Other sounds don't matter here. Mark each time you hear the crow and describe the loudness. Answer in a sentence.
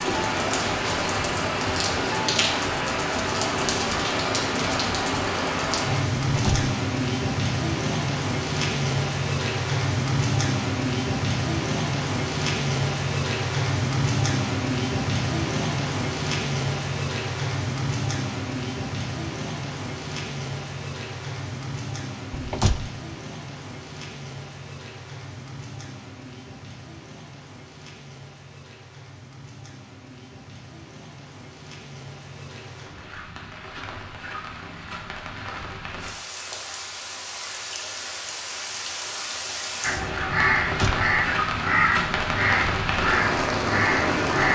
The crow can be heard from 39.8 to 44.5 s, at a steady volume.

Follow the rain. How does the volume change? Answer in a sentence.
The loudness of the rain goes down, then up.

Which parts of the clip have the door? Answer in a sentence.
The door can be heard from 6.2 to 6.7 s, from 22.3 to 22.9 s and from 40.6 to 41.0 s.